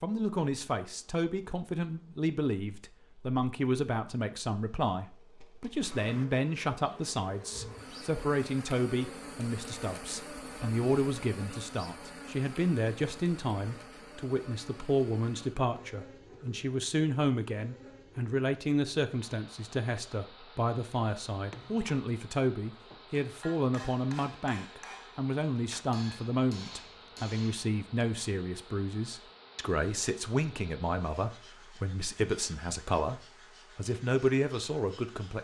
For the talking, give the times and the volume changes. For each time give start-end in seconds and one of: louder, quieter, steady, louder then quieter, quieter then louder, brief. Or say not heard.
0.0-35.4 steady.